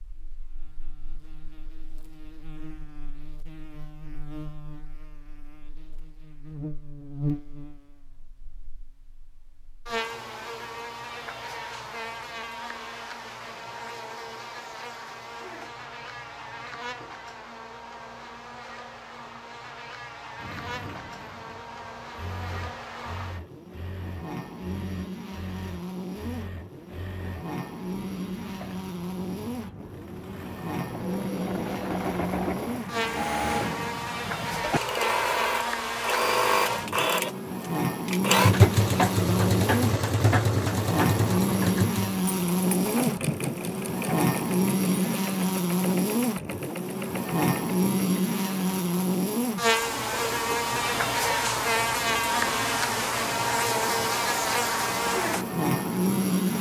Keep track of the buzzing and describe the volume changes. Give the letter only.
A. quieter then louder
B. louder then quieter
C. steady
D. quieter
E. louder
E.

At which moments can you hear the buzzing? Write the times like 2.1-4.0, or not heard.
0.0-56.5.